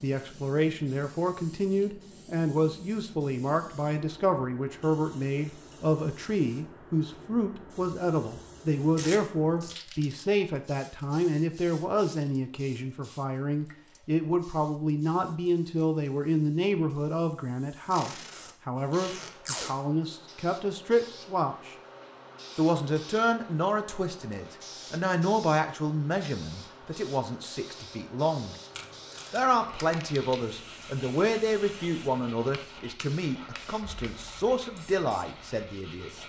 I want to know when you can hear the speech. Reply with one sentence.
You can hear the speech from 0.0 to 21.8 s, from 22.6 to 28.6 s and from 29.3 to 36.1 s.